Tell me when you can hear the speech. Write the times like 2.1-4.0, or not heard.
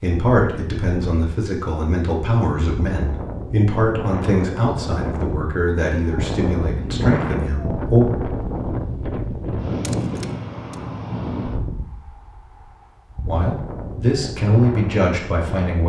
0.0-8.1, 13.2-15.8.